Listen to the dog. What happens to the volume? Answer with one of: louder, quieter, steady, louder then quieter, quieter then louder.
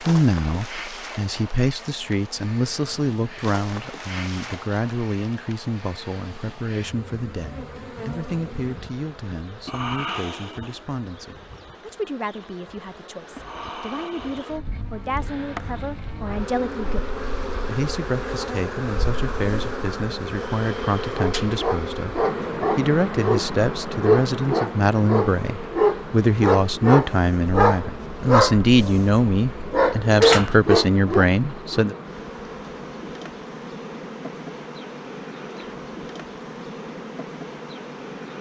louder.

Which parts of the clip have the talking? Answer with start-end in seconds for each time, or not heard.
0.0-31.9.